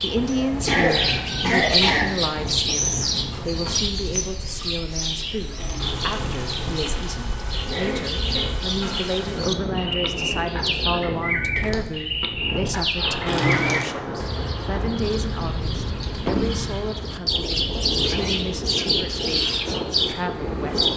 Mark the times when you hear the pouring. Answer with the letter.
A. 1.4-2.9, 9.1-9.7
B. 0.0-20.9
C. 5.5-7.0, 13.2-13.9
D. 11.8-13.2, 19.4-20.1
C.